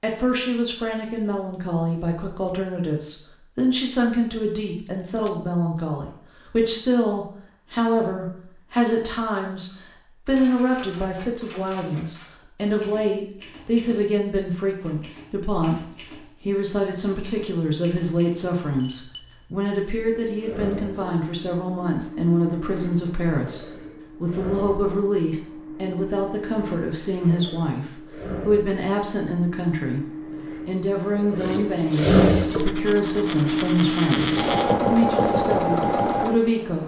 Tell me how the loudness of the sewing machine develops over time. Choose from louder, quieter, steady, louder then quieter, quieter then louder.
louder.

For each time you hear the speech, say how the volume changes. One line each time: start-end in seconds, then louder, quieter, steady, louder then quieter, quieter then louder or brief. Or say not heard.
0.0-36.8 steady.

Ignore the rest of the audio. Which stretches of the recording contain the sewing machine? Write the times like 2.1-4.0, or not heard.
19.8-36.8.